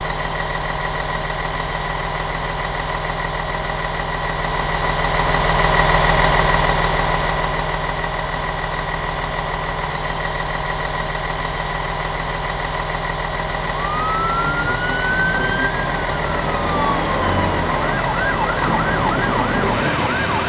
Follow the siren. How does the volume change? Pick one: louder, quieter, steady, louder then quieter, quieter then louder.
steady.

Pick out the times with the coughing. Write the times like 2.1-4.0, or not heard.
not heard.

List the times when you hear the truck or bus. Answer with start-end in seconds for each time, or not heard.
0.0-20.4.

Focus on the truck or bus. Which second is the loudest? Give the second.
6 s.